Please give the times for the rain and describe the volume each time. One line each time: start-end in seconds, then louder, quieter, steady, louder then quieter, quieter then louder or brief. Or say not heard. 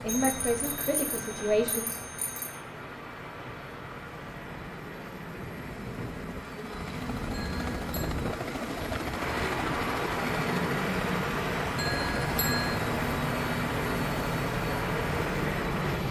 0.0-16.0 louder.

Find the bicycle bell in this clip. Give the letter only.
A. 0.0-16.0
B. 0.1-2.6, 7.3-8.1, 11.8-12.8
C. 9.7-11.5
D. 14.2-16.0
B.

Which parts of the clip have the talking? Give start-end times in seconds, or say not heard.
0.0-1.9.